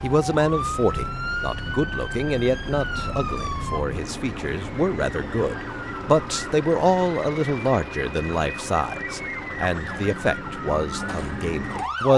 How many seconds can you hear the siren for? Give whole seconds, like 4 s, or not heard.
12 s.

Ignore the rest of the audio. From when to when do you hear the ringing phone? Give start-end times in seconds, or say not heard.
not heard.